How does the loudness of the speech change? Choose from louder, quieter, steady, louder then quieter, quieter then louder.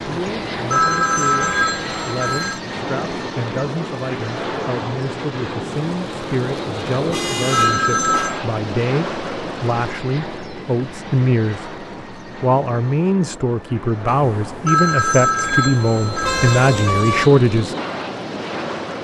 louder.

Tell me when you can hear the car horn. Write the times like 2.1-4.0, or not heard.
0.8-1.8, 6.9-8.3, 16.2-17.3.